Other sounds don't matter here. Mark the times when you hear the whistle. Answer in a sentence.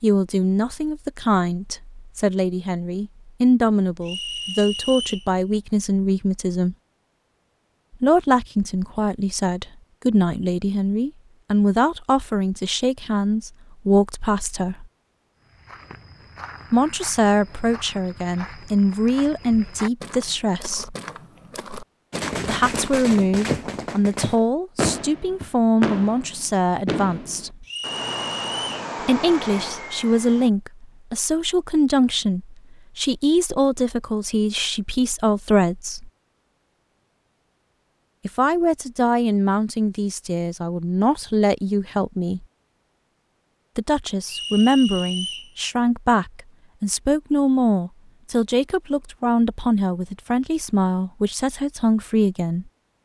You can hear the whistle from 4.0 to 5.3 s, from 27.6 to 28.9 s and from 44.2 to 45.5 s.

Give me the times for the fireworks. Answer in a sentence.
The fireworks can be heard from 22.1 to 30.5 s.